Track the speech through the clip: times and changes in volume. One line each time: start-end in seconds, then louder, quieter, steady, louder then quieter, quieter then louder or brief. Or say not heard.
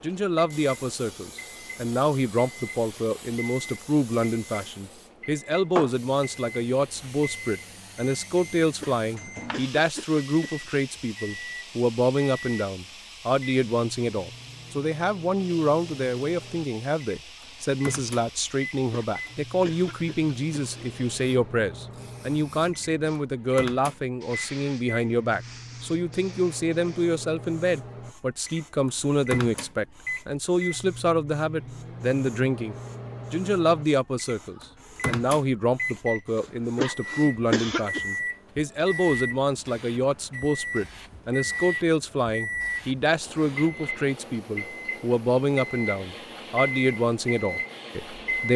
0.0-48.5 steady.